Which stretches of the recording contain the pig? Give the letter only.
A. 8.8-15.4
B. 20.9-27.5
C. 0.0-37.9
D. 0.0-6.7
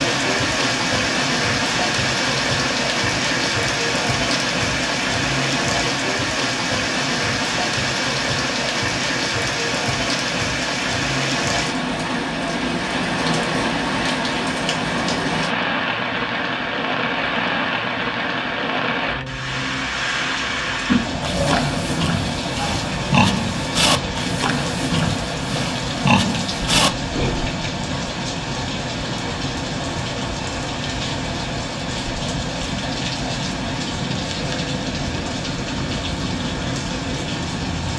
B.